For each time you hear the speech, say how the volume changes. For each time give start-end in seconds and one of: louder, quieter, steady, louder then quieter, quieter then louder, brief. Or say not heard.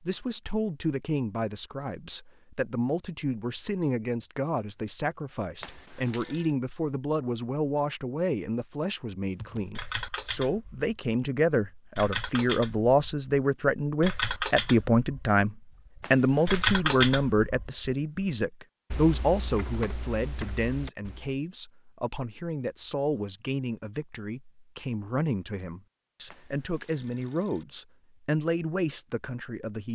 0.0-29.9 louder then quieter.